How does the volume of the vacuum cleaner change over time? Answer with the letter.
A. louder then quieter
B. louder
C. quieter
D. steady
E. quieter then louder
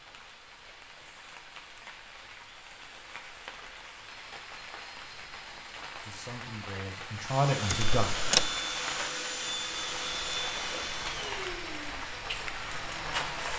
C.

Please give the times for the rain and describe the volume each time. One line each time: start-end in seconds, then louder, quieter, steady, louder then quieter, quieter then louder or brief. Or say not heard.
0.0-13.5 louder.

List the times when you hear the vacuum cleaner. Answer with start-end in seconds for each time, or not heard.
7.1-13.5.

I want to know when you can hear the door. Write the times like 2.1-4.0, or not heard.
7.7-8.6.